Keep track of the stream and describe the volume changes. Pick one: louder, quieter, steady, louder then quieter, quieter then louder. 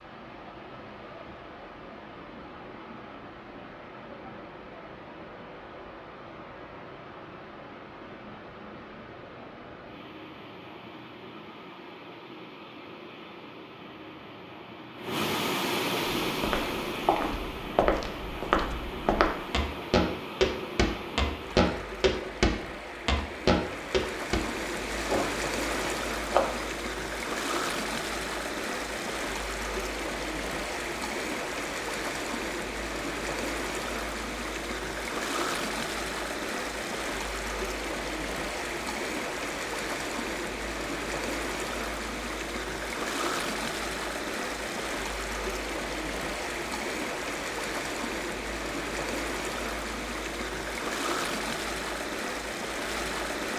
louder.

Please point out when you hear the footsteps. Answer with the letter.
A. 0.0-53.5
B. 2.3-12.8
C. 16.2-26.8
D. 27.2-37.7
C.